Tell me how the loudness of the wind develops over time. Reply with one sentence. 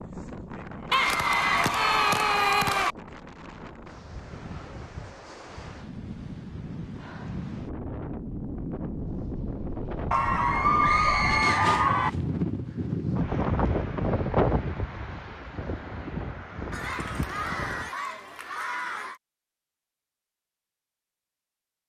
The volume of the wind goes up.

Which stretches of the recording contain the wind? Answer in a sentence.
You can hear the wind from 0.0 to 17.9 s.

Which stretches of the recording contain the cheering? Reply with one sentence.
You can hear the cheering from 0.9 to 3.0 s, from 10.1 to 12.1 s and from 16.7 to 19.2 s.